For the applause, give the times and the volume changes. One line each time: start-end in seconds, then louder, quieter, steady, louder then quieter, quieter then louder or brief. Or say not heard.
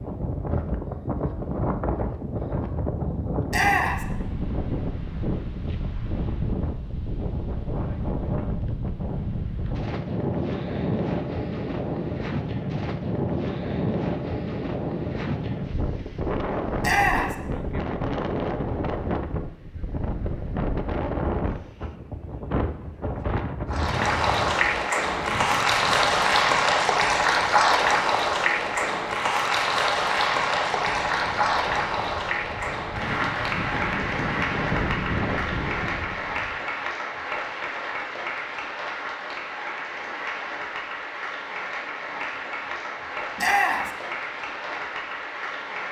23.7-45.8 quieter.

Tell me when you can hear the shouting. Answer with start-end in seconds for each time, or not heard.
3.5-4.0, 16.8-17.4, 43.4-43.9.